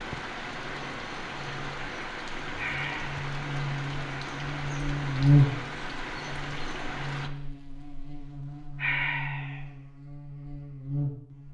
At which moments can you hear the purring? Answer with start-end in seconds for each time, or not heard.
not heard.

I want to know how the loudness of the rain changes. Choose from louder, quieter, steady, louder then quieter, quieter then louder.
steady.